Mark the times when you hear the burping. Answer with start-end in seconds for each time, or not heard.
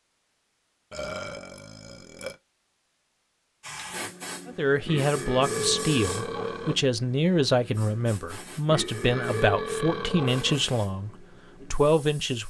0.9-2.4, 4.8-6.8, 8.7-10.6.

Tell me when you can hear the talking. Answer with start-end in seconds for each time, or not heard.
4.5-12.4.